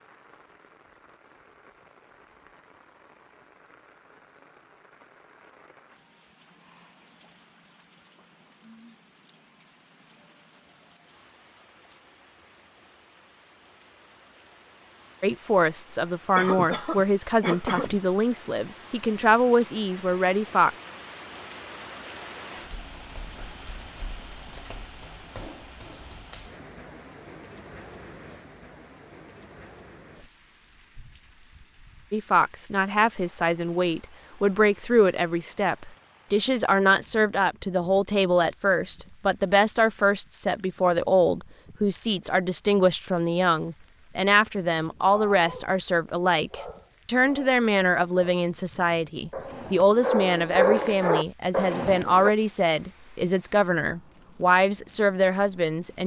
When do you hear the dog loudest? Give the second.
51 s.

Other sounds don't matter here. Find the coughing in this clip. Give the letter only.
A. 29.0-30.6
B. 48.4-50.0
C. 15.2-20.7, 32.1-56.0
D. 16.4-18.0
D.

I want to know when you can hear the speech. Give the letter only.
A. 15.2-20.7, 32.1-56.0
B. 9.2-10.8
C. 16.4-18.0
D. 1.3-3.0
A.